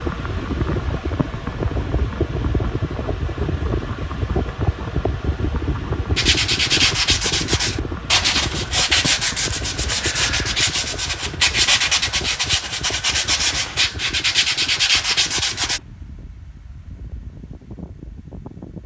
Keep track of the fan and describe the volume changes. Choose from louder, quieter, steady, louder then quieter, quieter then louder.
quieter.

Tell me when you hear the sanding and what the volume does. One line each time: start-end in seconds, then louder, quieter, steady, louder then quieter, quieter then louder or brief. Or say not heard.
6.2-15.8 steady.